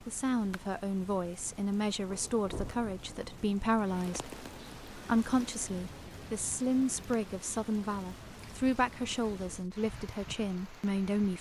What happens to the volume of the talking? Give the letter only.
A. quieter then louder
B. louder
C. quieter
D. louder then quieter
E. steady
E.